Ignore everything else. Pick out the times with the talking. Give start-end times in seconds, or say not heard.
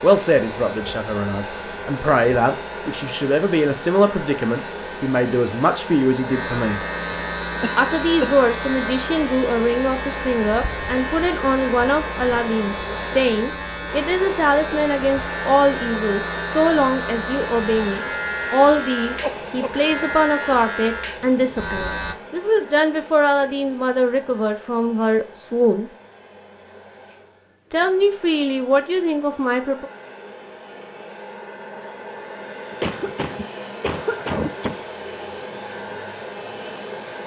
0.0-6.8, 7.8-25.9, 27.7-29.9.